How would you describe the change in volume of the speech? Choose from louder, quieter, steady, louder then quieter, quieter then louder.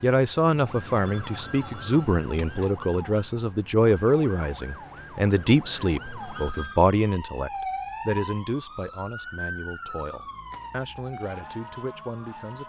quieter.